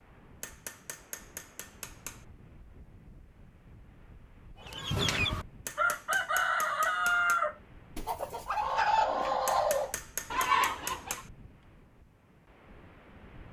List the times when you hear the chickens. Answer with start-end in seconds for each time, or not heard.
4.6-11.2.